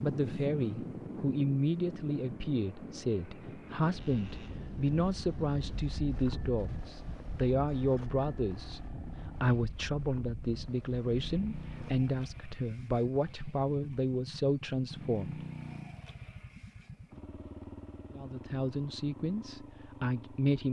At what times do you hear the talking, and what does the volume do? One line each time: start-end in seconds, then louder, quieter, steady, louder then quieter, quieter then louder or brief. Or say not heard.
0.0-15.4 steady
18.1-20.6 brief.